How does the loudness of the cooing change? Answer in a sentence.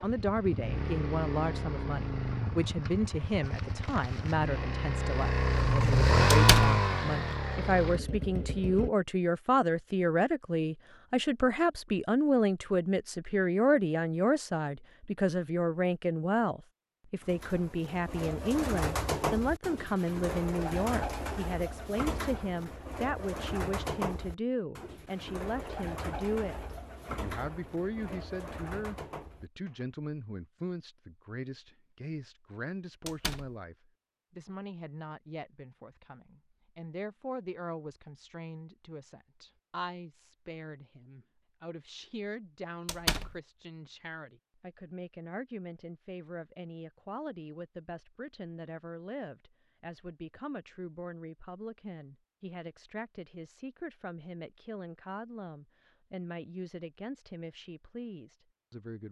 The loudness of the cooing goes down.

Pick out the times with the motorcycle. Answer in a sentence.
You can hear the motorcycle from 0.0 to 8.9 s.